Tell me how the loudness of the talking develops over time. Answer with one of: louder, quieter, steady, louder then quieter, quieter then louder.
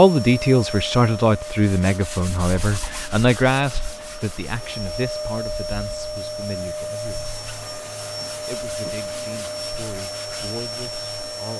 quieter.